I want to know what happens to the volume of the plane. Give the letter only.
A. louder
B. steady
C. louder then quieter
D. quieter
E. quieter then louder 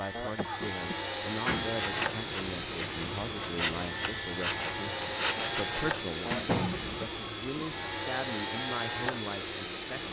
B.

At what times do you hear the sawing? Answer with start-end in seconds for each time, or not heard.
1.6-6.0.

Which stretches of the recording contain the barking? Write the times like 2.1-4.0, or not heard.
not heard.